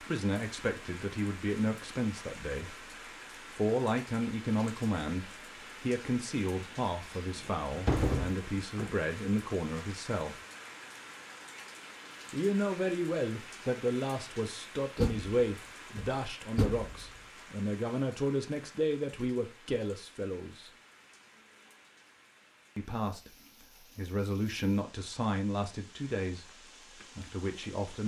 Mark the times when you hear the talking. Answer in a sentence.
You can hear the talking from 0.0 to 10.3 s, from 12.3 to 20.7 s, from 22.8 to 26.4 s and from 27.1 to 28.0 s.